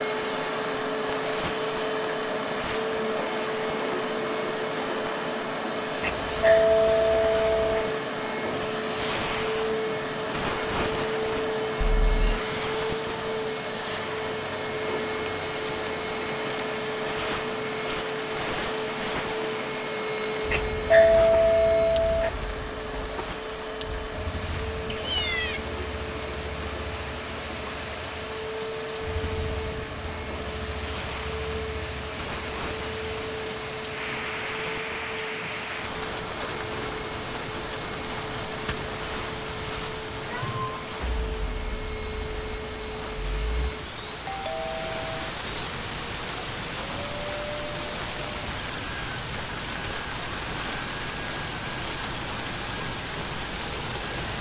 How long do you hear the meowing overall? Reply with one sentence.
You can hear the meowing for 2 seconds altogether.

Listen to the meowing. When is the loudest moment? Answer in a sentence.
The volume of the meowing peaks at 25 seconds.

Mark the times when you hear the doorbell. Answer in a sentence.
You can hear the doorbell from 6.0 to 7.8 s, from 20.5 to 22.3 s and from 44.2 to 45.3 s.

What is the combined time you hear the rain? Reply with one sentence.
You can hear the rain for 54 seconds altogether.